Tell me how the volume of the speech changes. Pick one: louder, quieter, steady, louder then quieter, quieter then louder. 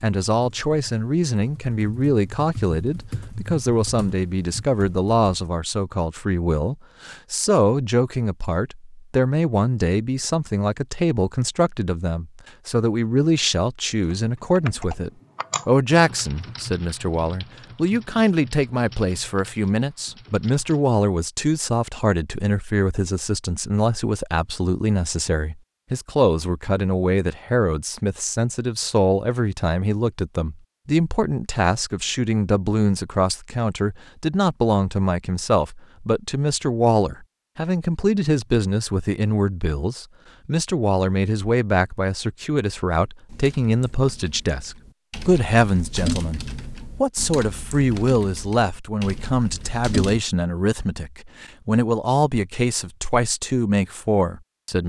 steady.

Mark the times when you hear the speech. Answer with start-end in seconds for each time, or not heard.
0.0-46.4, 47.0-54.8.